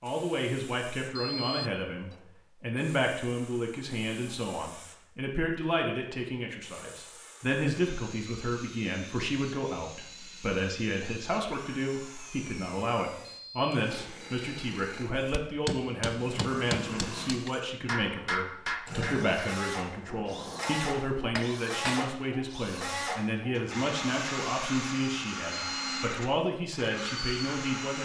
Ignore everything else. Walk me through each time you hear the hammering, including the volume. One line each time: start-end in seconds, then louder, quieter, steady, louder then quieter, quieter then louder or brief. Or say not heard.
15.3-22.1 quieter then louder.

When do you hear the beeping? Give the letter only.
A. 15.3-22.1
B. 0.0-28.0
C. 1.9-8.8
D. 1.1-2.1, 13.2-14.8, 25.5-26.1
D.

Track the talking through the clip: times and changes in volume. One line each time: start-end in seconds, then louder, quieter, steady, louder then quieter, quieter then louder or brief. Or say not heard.
0.0-28.0 steady.